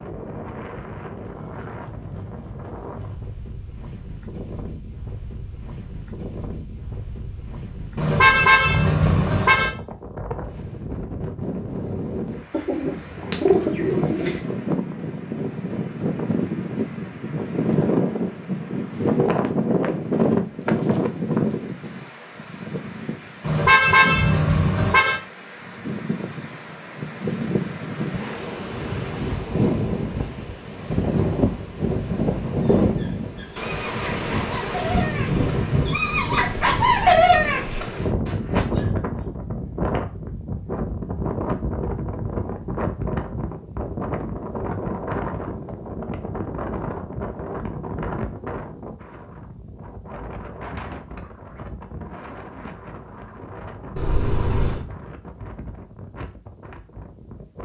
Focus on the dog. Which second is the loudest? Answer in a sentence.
The loudest moment of the dog is at 37 seconds.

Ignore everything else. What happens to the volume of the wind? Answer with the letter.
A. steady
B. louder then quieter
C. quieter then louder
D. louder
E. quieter
B.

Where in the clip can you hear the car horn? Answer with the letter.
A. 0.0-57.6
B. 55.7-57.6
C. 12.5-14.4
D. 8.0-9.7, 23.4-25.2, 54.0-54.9
D.